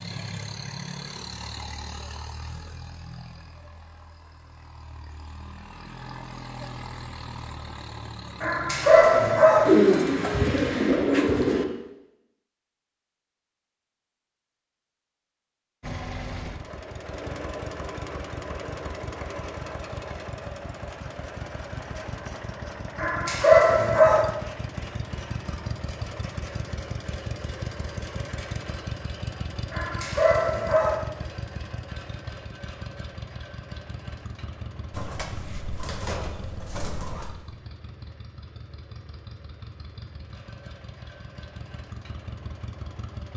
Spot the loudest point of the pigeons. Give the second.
10 s.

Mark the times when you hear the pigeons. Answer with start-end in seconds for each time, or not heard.
9.7-11.7, 34.9-37.4.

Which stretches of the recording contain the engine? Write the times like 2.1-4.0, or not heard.
0.0-9.7, 15.8-43.3.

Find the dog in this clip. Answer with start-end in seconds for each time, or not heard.
8.4-9.7, 22.9-24.2, 29.7-30.9.